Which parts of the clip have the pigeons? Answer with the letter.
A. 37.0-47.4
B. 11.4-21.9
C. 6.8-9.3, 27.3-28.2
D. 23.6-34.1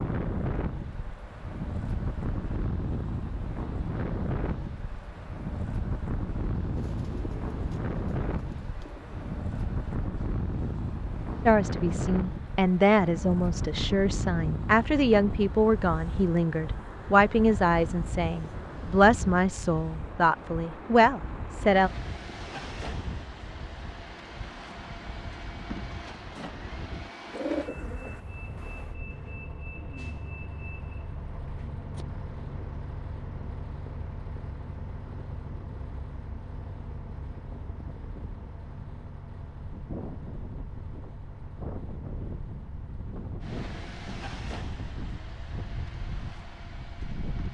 C.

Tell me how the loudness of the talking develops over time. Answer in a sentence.
The loudness of the talking stays about the same.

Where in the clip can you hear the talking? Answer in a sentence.
You can hear the talking from 11.4 to 21.9 s.